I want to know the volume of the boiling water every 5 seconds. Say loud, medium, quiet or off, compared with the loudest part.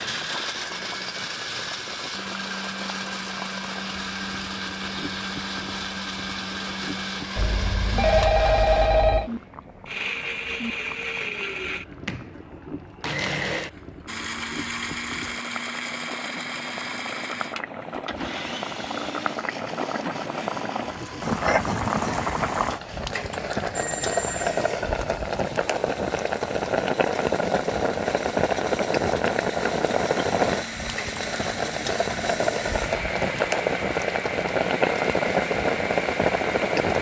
quiet, quiet, quiet, medium, loud, loud, loud, loud.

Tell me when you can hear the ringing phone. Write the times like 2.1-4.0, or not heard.
7.3-9.3, 23.8-24.5.